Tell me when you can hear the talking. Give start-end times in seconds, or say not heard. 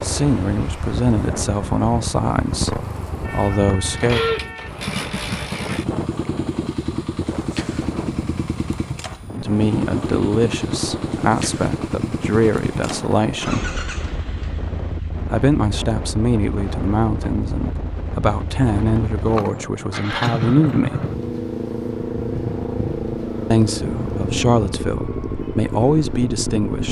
0.0-2.7, 3.3-4.2, 9.3-13.7, 15.3-21.1, 23.5-26.8.